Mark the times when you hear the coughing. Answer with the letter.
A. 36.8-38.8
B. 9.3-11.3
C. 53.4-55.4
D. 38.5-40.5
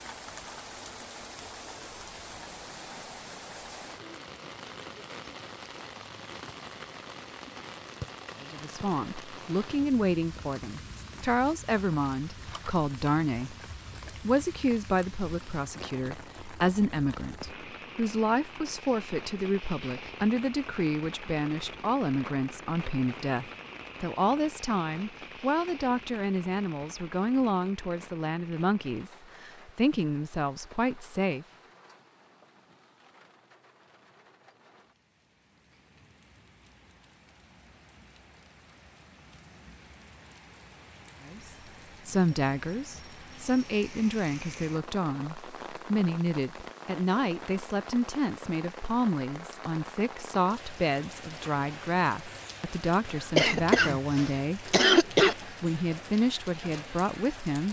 C.